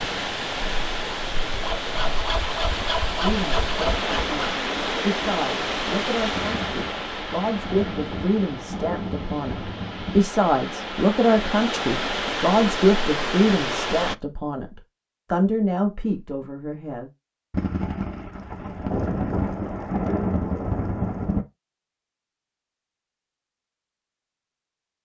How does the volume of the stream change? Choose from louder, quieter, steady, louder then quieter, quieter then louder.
quieter then louder.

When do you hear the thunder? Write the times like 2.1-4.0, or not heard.
6.3-10.2, 17.5-21.4.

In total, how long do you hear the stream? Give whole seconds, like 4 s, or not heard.
14 s.